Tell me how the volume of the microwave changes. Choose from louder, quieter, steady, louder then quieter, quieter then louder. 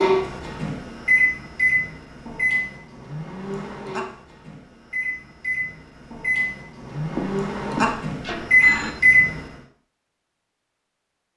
quieter then louder.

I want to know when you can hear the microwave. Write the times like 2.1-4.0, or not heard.
0.0-9.4.